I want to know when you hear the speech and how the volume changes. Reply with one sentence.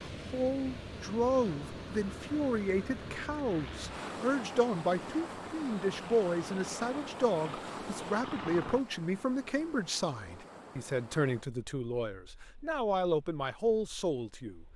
You can hear the speech from 0.0 to 14.6 s, at a steady volume.